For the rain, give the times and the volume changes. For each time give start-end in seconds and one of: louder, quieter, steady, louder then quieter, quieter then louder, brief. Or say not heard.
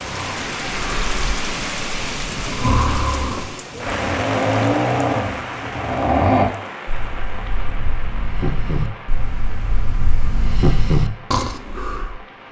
0.0-12.4 quieter.